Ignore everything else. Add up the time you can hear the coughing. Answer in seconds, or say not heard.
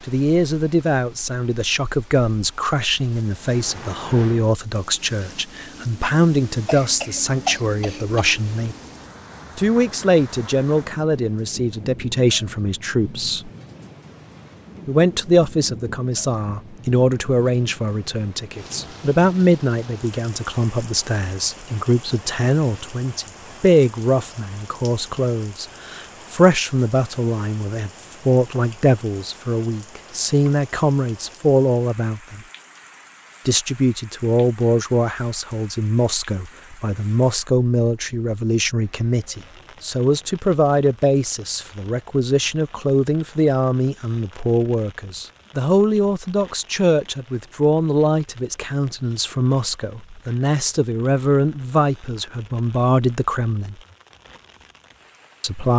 2 s.